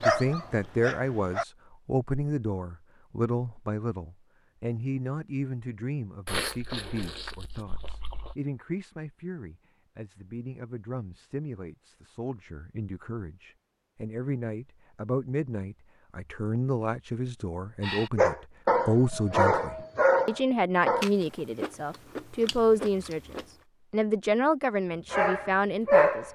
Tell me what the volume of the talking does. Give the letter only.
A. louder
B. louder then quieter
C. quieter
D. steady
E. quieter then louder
E.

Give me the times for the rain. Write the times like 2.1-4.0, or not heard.
not heard.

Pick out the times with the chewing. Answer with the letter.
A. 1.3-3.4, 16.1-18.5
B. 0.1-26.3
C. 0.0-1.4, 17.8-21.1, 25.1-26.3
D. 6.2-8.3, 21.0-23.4
D.